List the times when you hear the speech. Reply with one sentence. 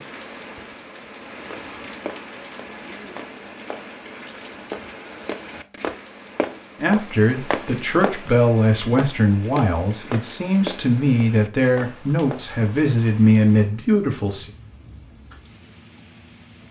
You can hear the speech from 6.8 to 14.5 s.